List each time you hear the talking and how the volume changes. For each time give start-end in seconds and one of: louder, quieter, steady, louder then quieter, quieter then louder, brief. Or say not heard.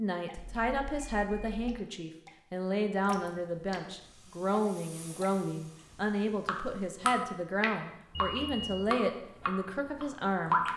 0.0-10.6 steady.